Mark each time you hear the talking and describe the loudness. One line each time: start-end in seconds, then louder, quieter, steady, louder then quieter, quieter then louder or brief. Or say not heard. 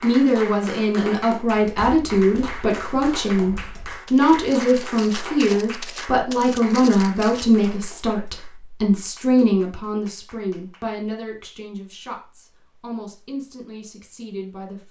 0.0-14.8 quieter.